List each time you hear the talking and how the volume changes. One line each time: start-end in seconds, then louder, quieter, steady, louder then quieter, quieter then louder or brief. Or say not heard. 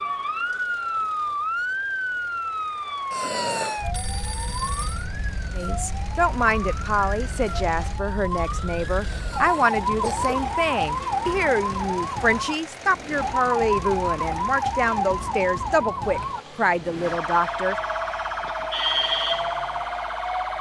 5.5-17.8 steady.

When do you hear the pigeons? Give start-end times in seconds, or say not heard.
not heard.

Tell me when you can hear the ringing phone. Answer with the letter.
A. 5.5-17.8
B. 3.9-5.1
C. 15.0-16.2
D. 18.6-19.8
B.